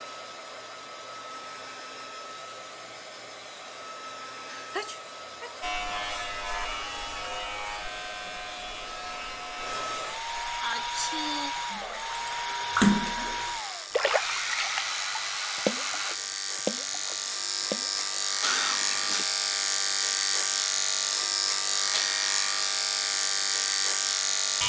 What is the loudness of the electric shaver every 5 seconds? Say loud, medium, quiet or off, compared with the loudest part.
off, medium, quiet, loud, loud.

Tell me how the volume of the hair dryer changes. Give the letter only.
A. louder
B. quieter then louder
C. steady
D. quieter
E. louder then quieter
A.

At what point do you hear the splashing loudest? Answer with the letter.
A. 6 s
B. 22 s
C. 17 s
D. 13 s
D.